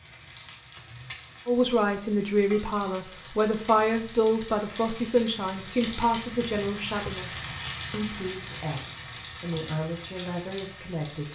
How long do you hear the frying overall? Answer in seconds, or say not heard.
11 s.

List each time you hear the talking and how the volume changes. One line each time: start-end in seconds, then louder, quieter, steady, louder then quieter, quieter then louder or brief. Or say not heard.
1.4-11.3 quieter.